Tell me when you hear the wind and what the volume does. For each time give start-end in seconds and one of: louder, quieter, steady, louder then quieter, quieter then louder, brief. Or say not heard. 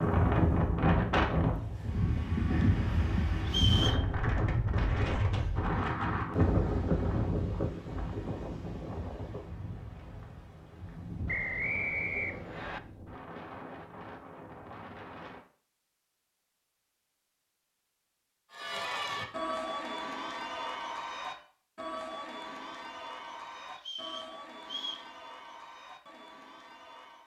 0.0-15.4 quieter.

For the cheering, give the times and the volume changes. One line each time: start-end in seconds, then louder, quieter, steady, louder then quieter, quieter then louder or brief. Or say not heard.
18.5-27.2 quieter.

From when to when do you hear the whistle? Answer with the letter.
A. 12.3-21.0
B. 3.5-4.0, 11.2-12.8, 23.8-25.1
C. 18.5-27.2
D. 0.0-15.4
B.